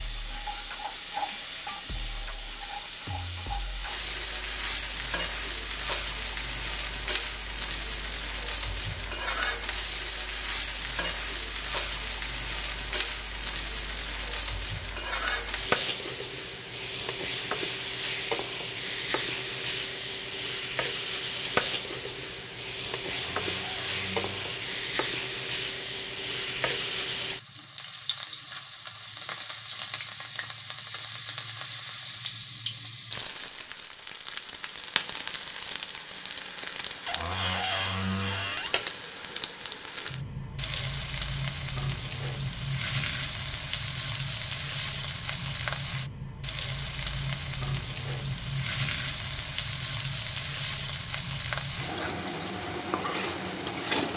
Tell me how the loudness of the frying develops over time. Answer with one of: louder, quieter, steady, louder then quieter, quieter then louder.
steady.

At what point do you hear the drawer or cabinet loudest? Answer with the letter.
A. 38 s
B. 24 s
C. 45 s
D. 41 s
A.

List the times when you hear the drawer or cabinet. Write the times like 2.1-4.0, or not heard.
23.1-24.6, 37.0-38.8.